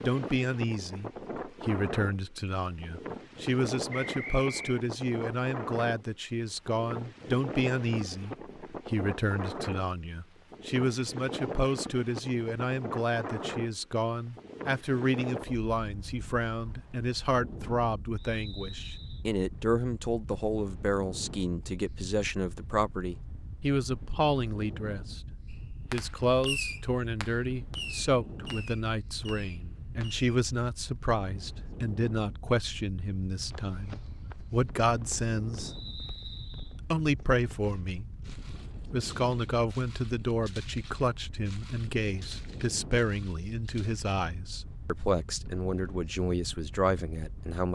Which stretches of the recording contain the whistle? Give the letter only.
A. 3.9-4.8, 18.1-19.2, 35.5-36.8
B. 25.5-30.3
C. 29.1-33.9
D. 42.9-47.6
A.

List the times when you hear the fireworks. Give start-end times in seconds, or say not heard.
25.5-30.3.